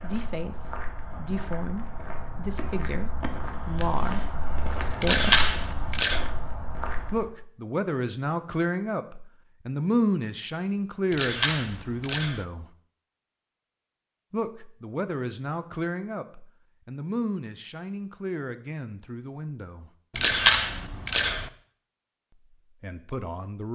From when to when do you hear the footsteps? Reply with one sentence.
You can hear the footsteps from 0.0 to 7.3 s.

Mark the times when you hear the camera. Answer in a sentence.
You can hear the camera from 5.0 to 6.2 s, from 11.1 to 12.4 s and from 20.1 to 21.5 s.